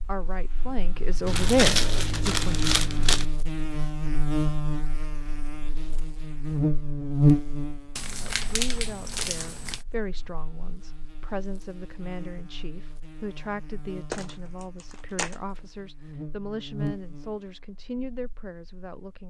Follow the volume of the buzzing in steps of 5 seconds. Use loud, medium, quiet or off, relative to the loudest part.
medium, loud, quiet, quiet.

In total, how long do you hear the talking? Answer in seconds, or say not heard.
14 s.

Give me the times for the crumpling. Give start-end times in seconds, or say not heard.
1.2-3.2, 8.0-9.8, 14.1-15.3.